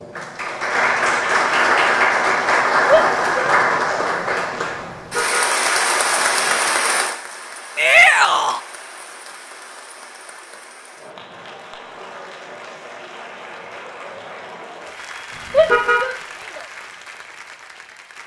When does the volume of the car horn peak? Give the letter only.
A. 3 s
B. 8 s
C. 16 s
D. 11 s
C.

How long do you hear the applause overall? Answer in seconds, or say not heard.
18 s.